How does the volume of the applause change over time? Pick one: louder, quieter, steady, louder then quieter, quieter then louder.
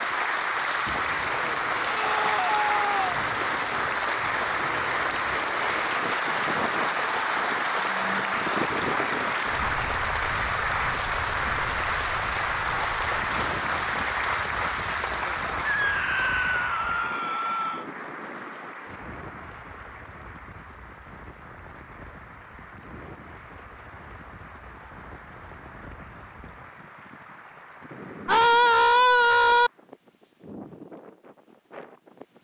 quieter.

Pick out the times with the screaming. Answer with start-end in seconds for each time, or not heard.
1.9-3.1, 15.7-17.9, 28.2-29.7.